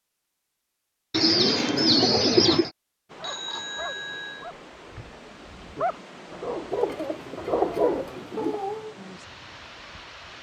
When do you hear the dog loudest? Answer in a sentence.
The loudest moment of the dog is at 8 seconds.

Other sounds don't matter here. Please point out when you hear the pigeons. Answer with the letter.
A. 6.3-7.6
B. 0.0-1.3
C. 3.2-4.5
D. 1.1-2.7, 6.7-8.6
D.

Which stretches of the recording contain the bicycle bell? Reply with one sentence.
You can hear the bicycle bell from 3.2 to 4.5 s.